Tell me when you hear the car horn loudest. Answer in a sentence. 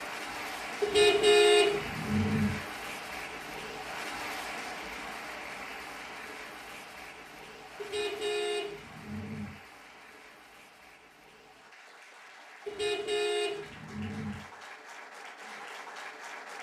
The loudest moment of the car horn is at 1 second.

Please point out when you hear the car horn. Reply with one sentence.
The car horn can be heard from 0.8 to 2.5 s, from 7.8 to 9.5 s and from 12.7 to 14.4 s.